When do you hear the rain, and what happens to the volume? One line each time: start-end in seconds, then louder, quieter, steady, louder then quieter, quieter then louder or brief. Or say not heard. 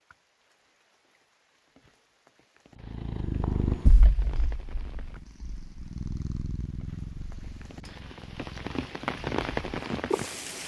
0.0-10.6 louder.